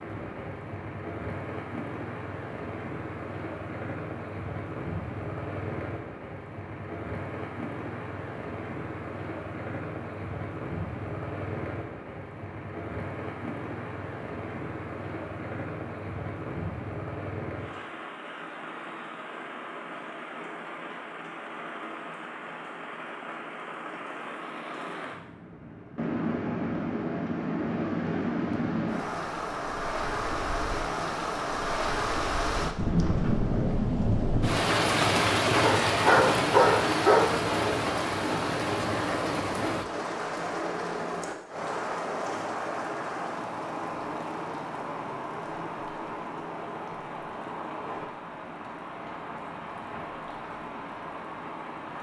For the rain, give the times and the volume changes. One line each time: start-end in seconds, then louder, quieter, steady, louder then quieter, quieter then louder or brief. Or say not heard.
0.0-51.9 louder then quieter.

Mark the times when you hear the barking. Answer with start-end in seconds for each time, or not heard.
35.6-37.4.